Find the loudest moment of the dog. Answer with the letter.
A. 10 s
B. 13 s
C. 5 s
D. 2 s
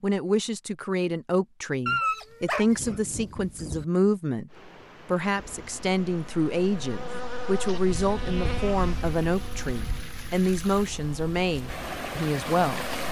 D.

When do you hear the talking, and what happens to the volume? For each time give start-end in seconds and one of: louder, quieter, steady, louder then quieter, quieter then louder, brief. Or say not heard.
0.0-12.9 steady.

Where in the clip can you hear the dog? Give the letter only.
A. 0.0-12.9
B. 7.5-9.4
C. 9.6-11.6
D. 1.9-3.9
D.